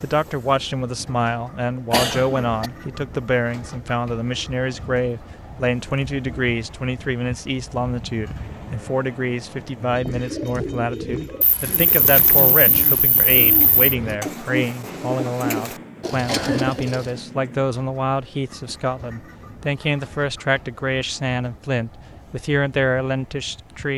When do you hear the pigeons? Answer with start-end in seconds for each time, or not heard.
9.8-17.2.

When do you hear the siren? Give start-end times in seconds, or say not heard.
not heard.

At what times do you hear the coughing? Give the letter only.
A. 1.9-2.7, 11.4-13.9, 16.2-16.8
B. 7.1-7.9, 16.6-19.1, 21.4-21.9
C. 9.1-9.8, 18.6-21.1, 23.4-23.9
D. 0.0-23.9
A.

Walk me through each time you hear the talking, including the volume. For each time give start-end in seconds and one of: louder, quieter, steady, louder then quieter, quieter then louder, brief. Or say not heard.
0.0-23.9 steady.